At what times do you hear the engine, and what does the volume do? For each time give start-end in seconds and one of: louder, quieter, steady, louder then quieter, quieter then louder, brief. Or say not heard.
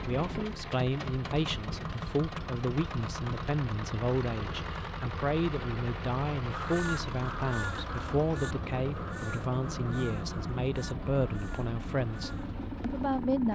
0.0-13.4 steady.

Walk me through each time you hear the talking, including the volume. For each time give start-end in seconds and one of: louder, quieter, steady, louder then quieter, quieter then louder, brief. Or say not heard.
0.1-13.4 steady.